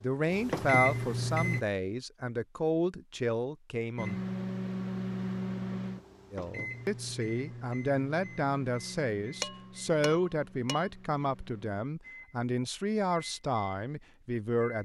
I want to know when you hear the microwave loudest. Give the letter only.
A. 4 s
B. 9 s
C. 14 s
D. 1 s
D.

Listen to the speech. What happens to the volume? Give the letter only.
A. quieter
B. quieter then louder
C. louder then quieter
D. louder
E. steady
E.